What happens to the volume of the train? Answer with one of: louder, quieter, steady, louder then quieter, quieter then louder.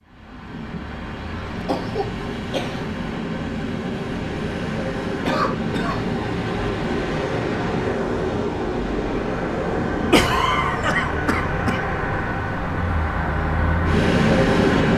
louder.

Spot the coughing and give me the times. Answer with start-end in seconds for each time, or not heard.
1.5-2.9, 5.2-6.0, 10.1-11.8.